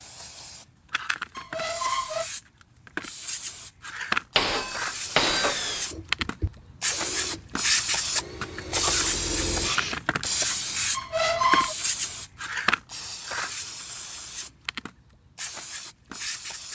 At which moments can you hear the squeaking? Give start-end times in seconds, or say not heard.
1.4-2.3, 10.9-11.8.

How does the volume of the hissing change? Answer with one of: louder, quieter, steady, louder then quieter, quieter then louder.
louder then quieter.